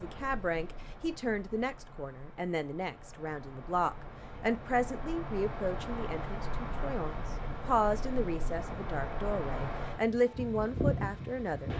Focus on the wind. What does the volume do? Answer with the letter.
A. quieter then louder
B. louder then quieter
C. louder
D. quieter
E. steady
C.